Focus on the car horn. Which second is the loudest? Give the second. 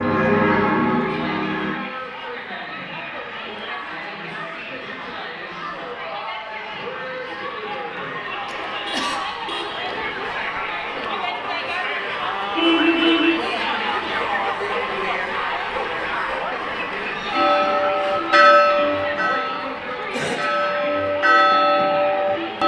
13 s.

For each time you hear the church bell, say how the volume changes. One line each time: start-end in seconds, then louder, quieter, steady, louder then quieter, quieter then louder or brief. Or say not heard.
0.0-1.8 brief
17.3-22.6 quieter then louder.